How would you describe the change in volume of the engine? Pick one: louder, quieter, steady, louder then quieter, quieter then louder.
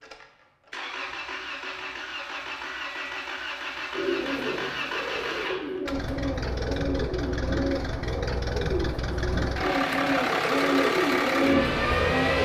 louder.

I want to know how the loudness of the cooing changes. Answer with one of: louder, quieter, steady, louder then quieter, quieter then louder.
louder.